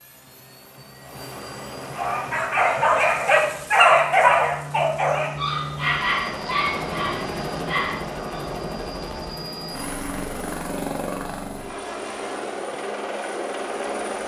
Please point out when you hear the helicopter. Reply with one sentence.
You can hear the helicopter from 0.0 to 14.2 s.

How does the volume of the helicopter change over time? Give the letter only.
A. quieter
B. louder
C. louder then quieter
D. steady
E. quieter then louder
B.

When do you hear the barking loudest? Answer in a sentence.
The loudest moment of the barking is at 4 seconds.